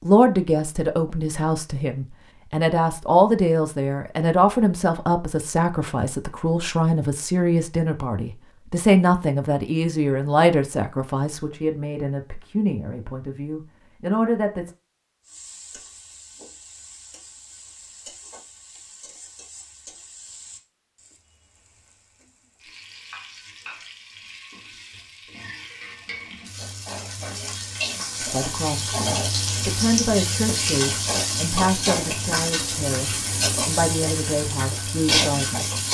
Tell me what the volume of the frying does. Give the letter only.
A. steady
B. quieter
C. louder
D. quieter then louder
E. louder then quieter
C.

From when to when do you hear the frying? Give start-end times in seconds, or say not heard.
15.2-35.9.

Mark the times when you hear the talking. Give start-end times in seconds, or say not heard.
0.0-14.7, 28.2-35.6.